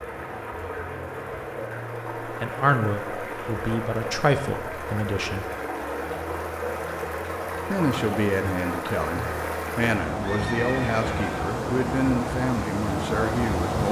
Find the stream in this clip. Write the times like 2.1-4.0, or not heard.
0.0-13.8.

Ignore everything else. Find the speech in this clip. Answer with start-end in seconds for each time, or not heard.
2.2-5.5, 7.7-13.8.